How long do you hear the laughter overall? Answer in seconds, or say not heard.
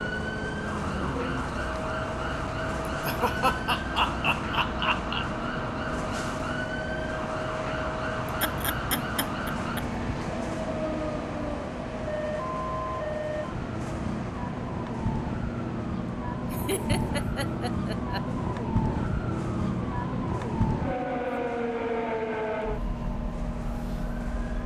6 s.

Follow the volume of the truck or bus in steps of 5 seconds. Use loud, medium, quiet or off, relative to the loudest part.
loud, loud, loud, medium, medium.